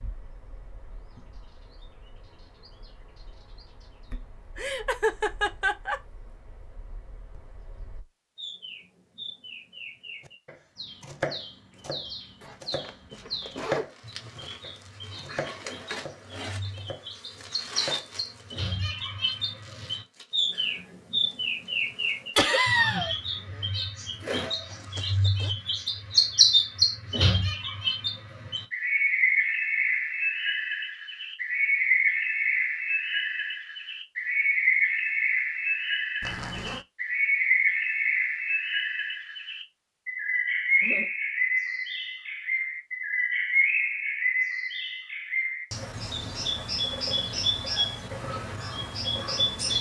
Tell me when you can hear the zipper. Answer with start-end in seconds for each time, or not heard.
12.4-13.8, 24.6-25.6, 36.2-36.9.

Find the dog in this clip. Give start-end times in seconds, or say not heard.
not heard.